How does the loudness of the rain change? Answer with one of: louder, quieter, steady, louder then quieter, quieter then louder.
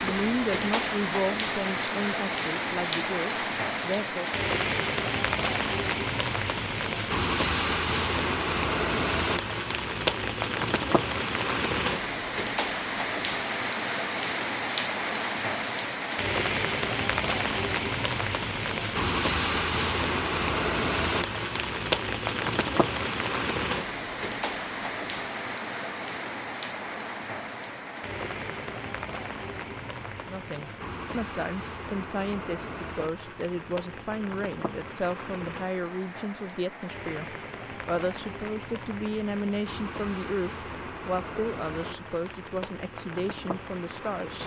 quieter.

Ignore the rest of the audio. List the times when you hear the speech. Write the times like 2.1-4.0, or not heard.
0.0-4.3, 30.2-44.4.